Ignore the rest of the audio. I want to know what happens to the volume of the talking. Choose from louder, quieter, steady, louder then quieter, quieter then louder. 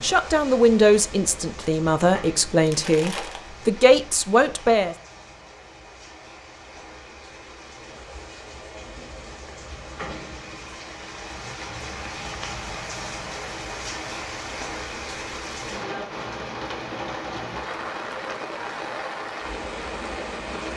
quieter then louder.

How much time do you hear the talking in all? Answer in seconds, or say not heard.
5 s.